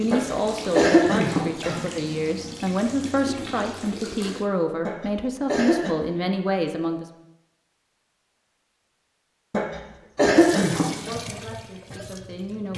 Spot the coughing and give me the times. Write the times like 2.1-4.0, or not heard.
0.1-1.9, 4.8-6.0, 9.5-11.2.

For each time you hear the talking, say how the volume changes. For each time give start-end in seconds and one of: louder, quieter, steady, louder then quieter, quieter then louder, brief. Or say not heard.
0.0-7.0 steady
10.9-12.7 brief.